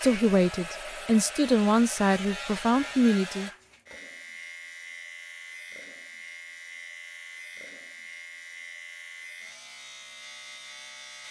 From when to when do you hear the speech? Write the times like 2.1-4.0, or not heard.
0.0-3.5.